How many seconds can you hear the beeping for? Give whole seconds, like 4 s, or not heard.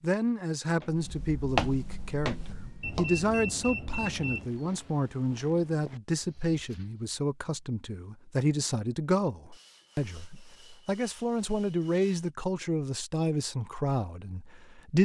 2 s.